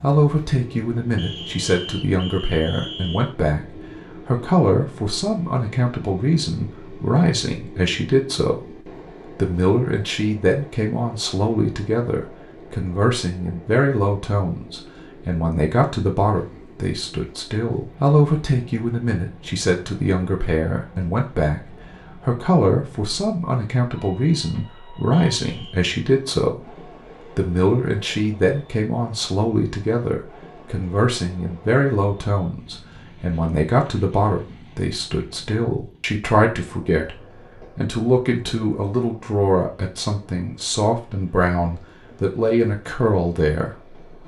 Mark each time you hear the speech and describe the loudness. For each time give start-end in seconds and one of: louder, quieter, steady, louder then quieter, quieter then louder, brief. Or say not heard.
0.0-44.0 steady.